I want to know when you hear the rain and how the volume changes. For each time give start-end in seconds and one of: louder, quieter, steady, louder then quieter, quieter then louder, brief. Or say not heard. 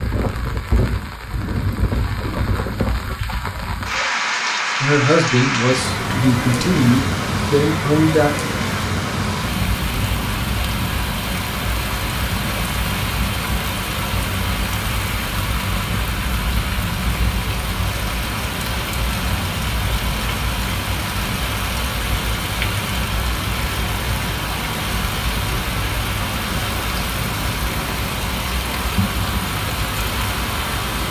0.0-31.0 steady.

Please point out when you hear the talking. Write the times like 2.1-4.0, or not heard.
4.8-8.3.